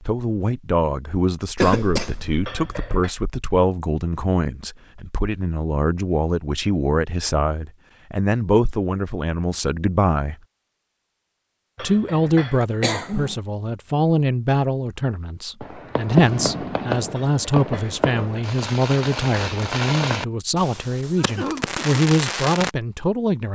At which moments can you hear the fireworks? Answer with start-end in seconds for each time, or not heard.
15.6-22.7.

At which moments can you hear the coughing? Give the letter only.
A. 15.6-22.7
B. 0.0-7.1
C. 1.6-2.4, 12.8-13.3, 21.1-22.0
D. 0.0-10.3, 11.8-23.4
C.